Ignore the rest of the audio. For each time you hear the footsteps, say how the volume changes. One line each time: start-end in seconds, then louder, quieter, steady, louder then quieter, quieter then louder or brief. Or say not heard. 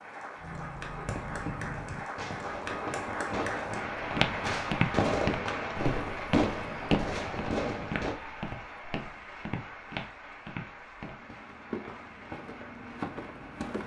4.0-13.8 quieter.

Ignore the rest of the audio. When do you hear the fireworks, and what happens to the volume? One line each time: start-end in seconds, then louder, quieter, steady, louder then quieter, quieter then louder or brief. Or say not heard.
0.3-8.2 louder.